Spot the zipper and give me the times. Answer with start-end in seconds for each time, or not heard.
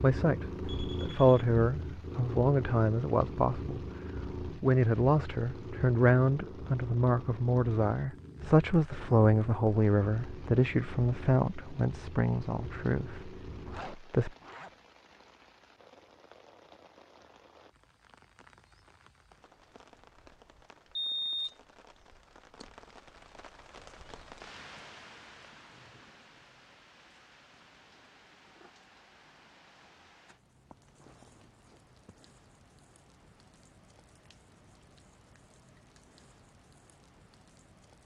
13.6-14.7.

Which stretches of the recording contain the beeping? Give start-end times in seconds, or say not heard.
0.6-1.4, 20.9-21.6.